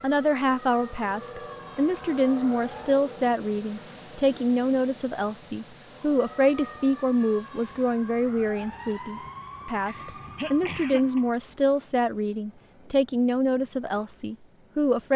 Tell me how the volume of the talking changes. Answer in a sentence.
The volume of the talking stays about the same.